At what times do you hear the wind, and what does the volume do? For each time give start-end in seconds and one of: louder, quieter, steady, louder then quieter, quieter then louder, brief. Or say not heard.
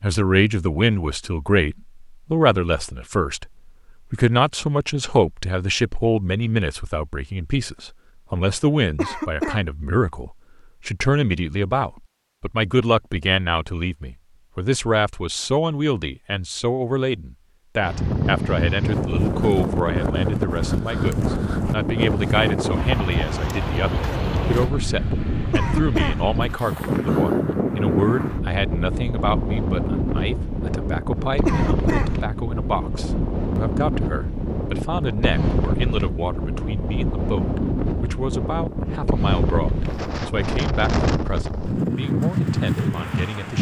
17.8-43.5 steady.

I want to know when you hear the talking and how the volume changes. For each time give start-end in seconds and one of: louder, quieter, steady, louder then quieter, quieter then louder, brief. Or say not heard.
0.0-43.5 quieter.